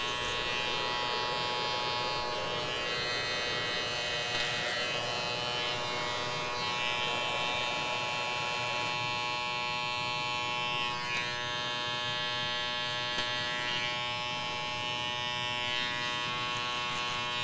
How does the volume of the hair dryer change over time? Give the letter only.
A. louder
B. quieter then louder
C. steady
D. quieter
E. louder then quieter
C.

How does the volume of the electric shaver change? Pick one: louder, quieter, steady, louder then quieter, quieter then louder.
steady.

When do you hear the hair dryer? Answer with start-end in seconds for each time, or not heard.
0.0-9.0.